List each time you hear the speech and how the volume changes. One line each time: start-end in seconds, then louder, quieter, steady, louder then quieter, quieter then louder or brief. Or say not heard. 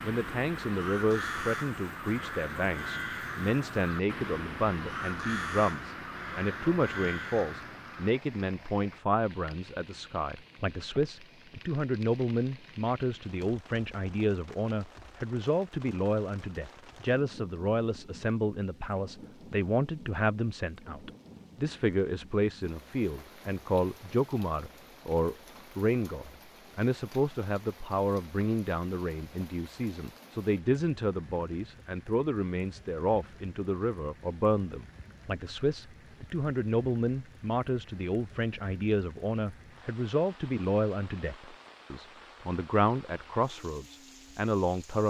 0.0-45.0 steady.